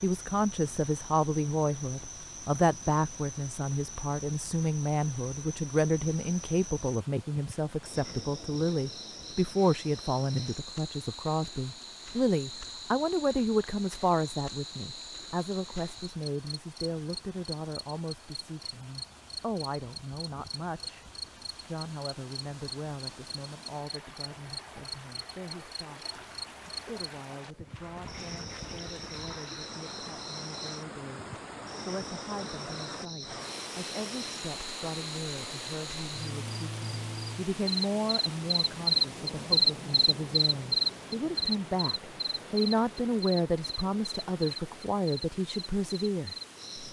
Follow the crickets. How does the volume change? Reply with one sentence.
The volume of the crickets goes up.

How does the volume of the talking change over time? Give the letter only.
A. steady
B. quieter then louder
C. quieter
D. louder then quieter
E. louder
B.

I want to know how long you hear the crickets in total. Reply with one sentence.
The crickets can be heard for 47 seconds in total.